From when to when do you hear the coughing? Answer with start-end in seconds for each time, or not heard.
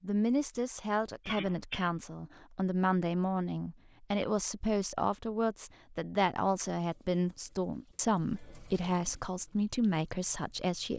1.2-1.9.